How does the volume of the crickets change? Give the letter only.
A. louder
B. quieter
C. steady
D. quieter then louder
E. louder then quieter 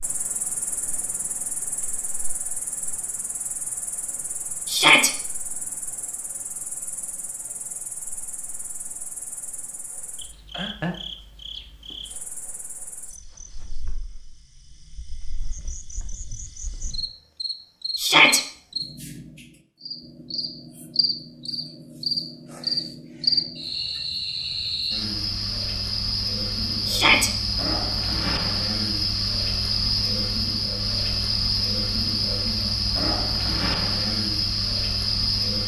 A.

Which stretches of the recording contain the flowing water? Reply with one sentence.
The flowing water can't be heard in this clip.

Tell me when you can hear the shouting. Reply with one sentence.
The shouting can be heard from 4.7 to 5.1 s, from 17.9 to 18.4 s and from 26.9 to 27.3 s.